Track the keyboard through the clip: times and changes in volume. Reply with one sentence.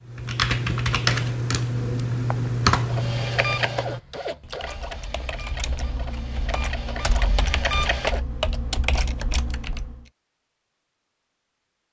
You can hear the keyboard from 0.1 to 10.1 s, getting quieter then louder.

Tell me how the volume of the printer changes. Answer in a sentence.
The volume of the printer goes down, then up.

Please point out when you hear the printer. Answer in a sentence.
You can hear the printer from 2.9 to 8.2 s.